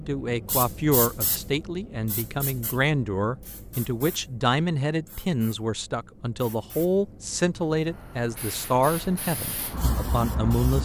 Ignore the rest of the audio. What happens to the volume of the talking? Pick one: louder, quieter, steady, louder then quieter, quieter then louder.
steady.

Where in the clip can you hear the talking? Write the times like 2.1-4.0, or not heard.
0.0-10.8.